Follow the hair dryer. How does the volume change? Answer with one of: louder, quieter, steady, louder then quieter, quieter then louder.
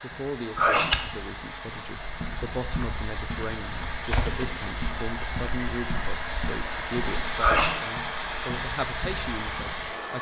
louder.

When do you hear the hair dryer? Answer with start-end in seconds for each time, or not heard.
0.0-10.1.